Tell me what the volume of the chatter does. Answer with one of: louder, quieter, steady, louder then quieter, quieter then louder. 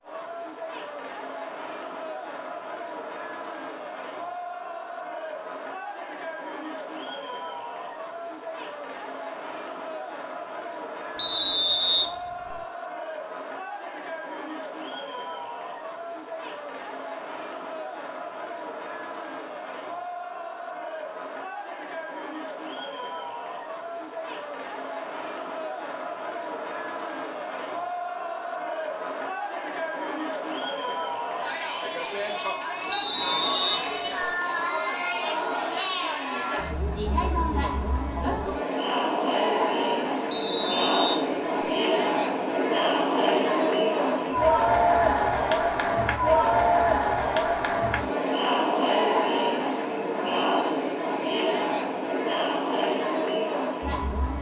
louder.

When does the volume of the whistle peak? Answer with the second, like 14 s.
12 s.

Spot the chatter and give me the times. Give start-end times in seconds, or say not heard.
0.0-54.3.